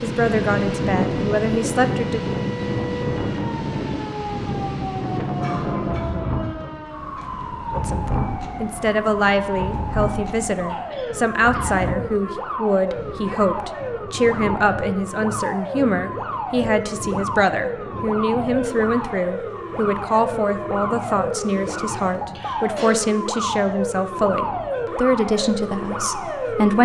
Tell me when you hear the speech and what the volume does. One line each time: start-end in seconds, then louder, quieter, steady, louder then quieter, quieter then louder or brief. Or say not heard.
0.0-2.2 brief
7.8-26.8 steady.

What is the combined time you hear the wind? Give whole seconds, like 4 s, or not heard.
27 s.